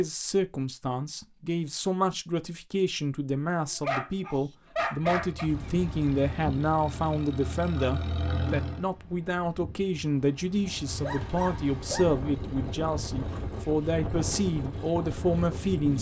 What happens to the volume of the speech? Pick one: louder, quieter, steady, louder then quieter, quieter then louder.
steady.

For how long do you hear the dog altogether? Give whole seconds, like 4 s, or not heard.
3 s.